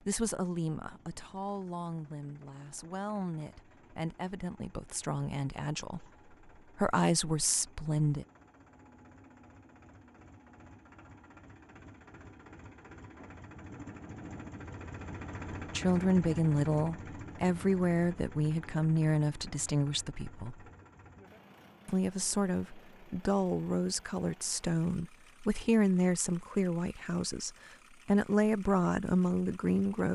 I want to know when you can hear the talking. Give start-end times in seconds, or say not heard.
0.1-6.0, 6.8-8.2, 15.7-20.6, 21.9-30.1.